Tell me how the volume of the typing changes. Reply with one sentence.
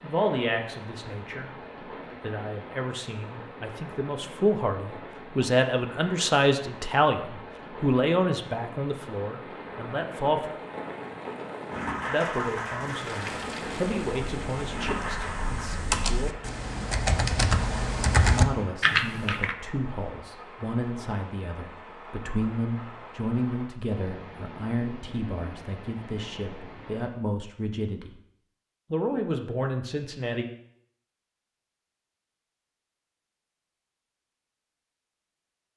The loudness of the typing goes up.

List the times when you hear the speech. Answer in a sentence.
The speech can be heard from 0.0 to 1.5 s, from 2.2 to 10.5 s, from 12.1 to 16.4 s, from 18.2 to 28.1 s and from 28.9 to 30.4 s.